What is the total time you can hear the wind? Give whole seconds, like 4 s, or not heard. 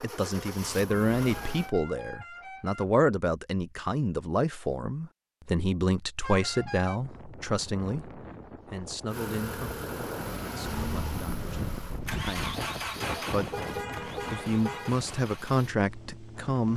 10 s.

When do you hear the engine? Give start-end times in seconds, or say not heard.
0.0-1.7, 9.1-16.7.